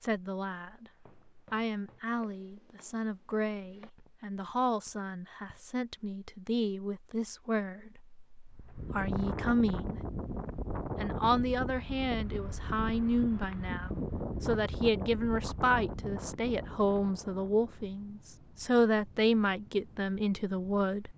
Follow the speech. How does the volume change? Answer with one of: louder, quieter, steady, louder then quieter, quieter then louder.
louder.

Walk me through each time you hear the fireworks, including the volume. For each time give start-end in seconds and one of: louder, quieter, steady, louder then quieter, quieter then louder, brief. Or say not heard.
not heard.